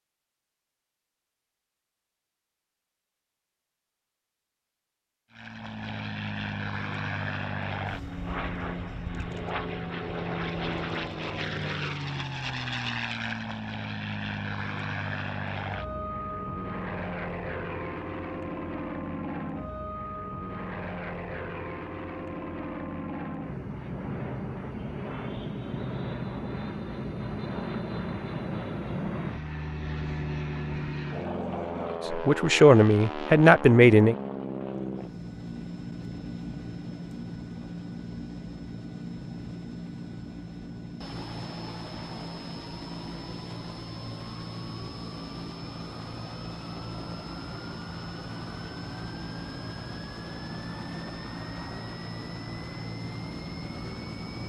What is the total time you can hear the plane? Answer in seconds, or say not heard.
49 s.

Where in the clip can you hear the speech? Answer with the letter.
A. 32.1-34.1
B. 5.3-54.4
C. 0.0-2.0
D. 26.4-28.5
A.